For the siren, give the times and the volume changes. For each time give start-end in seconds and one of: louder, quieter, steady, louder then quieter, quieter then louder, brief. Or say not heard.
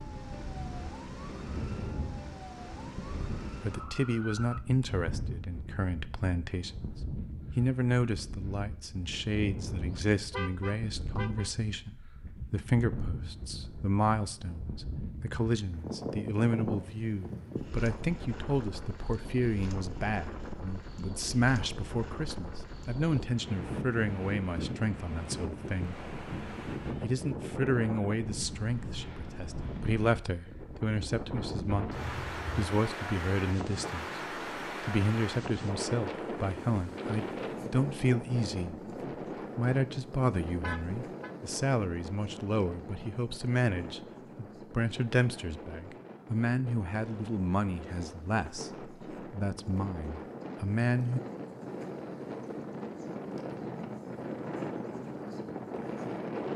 0.0-4.6 steady.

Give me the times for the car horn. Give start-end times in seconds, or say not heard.
9.8-11.5, 31.7-32.7, 40.6-41.3.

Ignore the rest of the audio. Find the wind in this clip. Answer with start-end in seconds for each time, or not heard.
0.0-56.5.